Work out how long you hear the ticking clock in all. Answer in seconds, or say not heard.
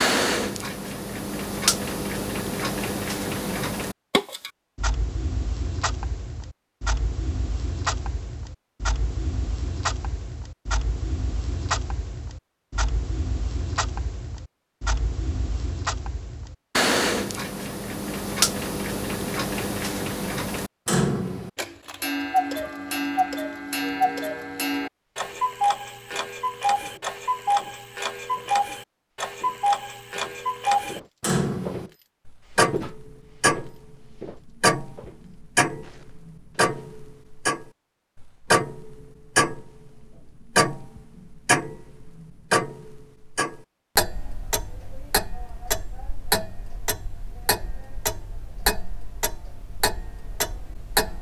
51 s.